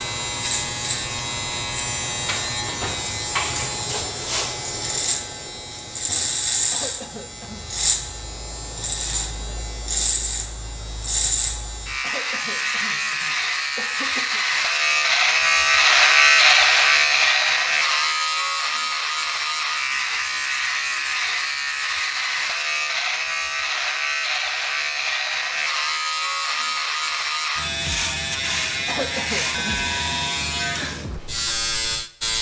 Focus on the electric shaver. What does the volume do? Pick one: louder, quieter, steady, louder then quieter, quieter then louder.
louder then quieter.